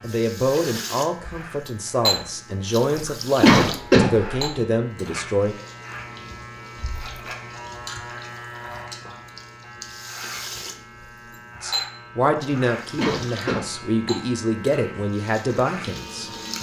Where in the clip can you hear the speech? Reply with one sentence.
The speech can be heard from 0.0 to 5.5 s and from 11.6 to 16.5 s.